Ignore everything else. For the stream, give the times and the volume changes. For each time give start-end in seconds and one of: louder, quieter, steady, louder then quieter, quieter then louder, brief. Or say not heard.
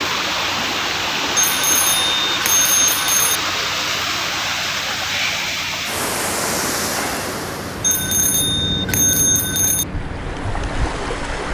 0.0-11.4 quieter.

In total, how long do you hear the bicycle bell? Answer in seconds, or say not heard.
4 s.